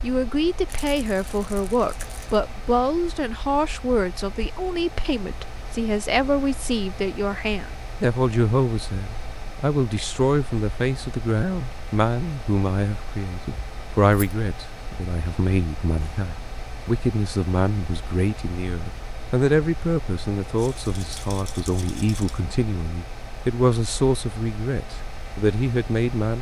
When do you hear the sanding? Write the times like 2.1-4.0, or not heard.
not heard.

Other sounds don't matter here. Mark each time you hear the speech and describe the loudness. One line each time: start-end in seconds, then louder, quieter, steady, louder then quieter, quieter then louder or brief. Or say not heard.
0.0-26.3 steady.